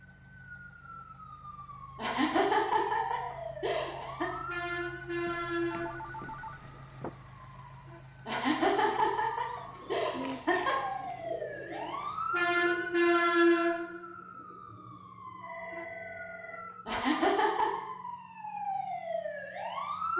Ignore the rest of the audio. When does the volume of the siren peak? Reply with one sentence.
The volume of the siren peaks at 13 seconds.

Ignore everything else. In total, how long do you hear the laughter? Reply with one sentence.
You can hear the laughter for 6 seconds altogether.